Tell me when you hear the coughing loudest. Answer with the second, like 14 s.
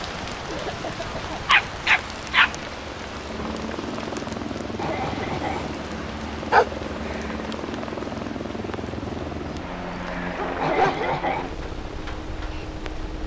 11 s.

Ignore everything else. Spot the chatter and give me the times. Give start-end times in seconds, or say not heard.
not heard.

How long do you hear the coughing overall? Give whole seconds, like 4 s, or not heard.
3 s.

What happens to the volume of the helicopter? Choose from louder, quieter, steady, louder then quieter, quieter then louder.
louder.